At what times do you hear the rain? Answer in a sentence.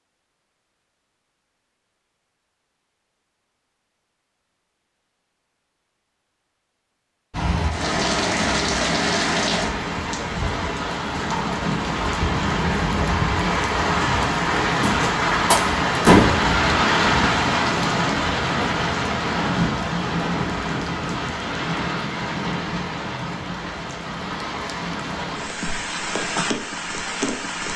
You can hear the rain from 7.3 to 27.7 s.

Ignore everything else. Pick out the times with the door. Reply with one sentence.
The door can be heard from 14.8 to 16.4 s.